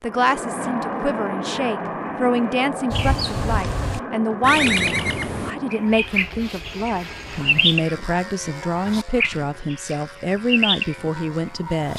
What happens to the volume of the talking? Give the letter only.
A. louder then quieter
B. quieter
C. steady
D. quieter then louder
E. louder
C.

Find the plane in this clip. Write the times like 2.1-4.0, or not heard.
0.0-11.9.